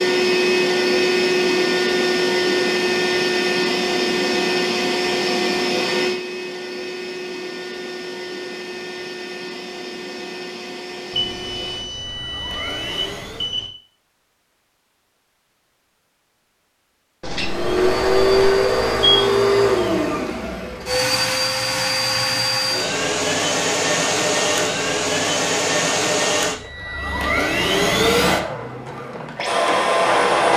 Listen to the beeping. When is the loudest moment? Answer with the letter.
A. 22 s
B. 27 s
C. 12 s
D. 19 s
D.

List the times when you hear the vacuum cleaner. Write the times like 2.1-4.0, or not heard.
0.0-13.5, 17.3-30.5.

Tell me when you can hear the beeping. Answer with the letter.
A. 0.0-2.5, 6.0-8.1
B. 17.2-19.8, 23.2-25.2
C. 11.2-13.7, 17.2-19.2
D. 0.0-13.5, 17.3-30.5
C.